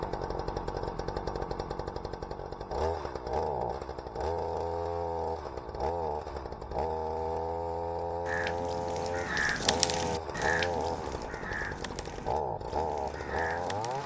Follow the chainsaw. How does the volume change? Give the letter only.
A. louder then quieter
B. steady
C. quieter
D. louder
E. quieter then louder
B.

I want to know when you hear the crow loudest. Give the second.
10 s.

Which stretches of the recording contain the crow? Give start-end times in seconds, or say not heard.
8.2-14.0.